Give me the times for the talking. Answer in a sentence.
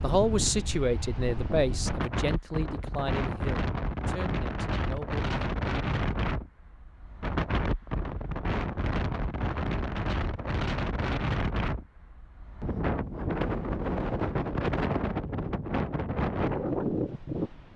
The talking can be heard from 0.0 to 5.2 s.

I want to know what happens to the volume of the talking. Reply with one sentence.
The volume of the talking goes down.